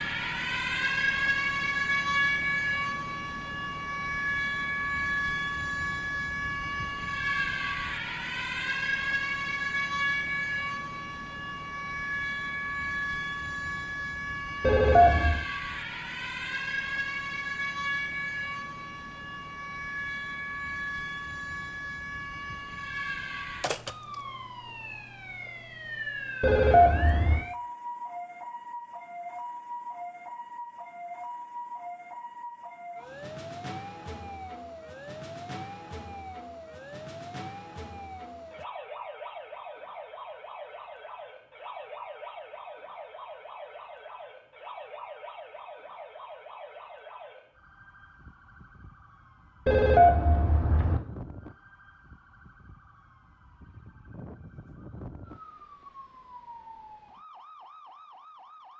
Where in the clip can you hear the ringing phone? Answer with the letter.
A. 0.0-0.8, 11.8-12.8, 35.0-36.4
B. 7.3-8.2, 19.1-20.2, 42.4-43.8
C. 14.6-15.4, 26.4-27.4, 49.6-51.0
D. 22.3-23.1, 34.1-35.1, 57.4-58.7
C.